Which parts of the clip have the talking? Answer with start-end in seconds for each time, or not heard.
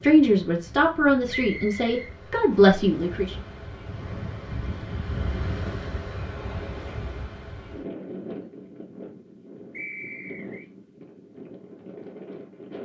0.0-3.4.